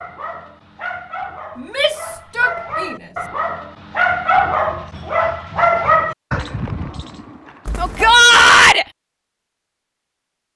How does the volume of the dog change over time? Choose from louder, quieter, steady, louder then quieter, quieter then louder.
louder then quieter.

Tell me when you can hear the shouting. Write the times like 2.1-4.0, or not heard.
1.6-3.0, 7.8-8.8.